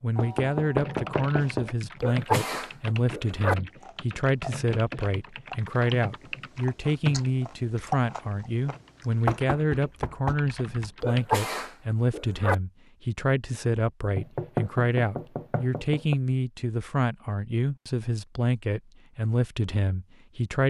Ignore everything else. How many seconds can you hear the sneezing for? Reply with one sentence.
You can hear the sneezing for 3 seconds altogether.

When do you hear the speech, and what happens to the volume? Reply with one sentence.
You can hear the speech from 0.0 to 20.6 s, at a steady volume.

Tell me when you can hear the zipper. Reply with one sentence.
You can't hear the zipper here.